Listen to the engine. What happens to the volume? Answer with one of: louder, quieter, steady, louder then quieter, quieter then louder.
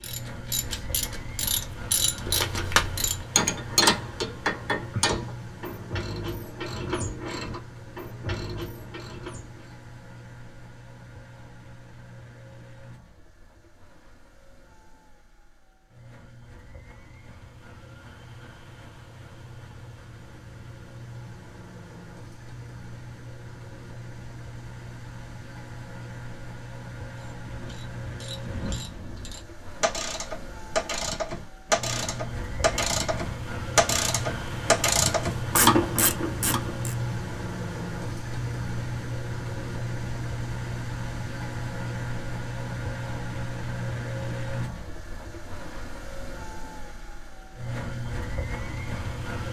quieter then louder.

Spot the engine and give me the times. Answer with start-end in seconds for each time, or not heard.
0.0-49.4.